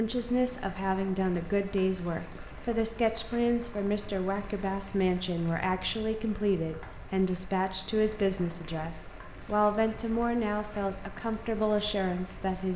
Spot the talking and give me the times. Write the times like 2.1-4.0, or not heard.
0.0-12.7.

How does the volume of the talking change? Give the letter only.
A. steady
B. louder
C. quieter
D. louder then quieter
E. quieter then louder
A.